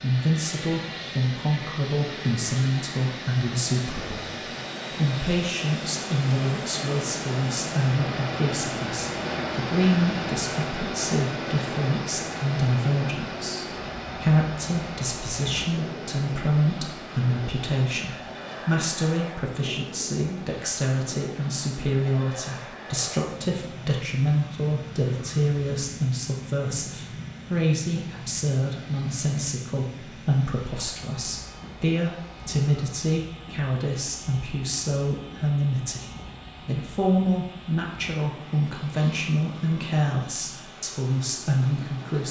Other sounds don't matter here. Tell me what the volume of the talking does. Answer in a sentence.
The loudness of the talking stays about the same.